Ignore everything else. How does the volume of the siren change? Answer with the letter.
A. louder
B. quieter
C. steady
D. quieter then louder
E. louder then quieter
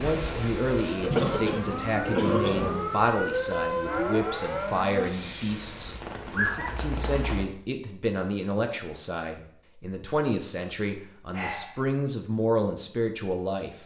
A.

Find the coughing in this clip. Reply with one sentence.
The coughing can be heard from 0.7 to 2.7 s.